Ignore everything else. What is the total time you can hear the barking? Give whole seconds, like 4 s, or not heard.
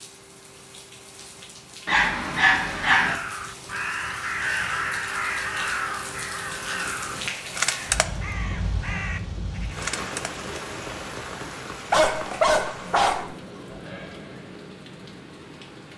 3 s.